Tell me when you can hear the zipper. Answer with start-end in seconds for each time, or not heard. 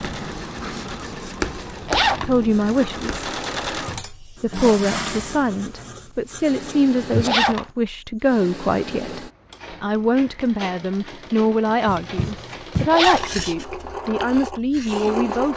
1.9-2.3, 7.2-7.7, 12.9-13.3.